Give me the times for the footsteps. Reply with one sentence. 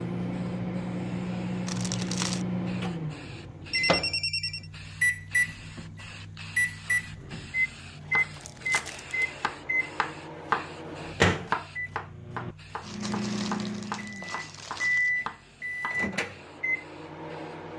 You can't hear the footsteps here.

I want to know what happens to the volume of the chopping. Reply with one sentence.
The loudness of the chopping goes up, then down.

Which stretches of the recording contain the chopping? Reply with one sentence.
You can hear the chopping from 7.2 to 16.1 s.